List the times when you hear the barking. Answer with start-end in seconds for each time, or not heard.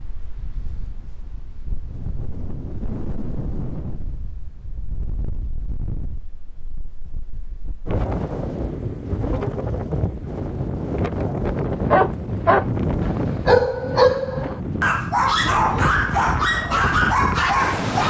11.7-18.0.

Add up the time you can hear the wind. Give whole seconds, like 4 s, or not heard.
18 s.